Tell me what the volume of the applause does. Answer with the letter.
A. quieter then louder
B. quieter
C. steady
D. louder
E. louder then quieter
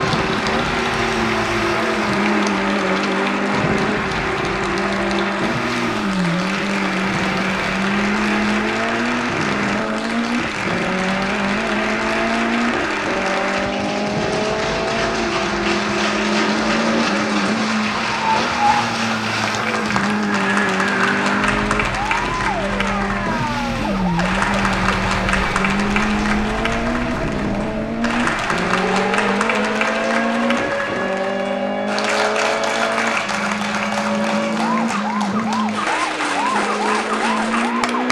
C.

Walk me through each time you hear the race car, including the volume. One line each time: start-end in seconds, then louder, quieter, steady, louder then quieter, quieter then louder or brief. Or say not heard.
0.0-38.0 steady.